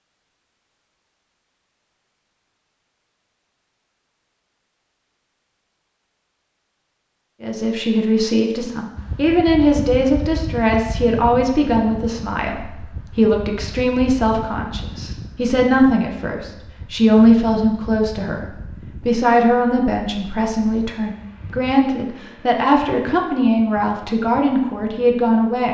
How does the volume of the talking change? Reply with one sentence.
The volume of the talking stays about the same.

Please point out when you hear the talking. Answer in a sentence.
You can hear the talking from 7.4 to 18.4 s and from 19.1 to 25.6 s.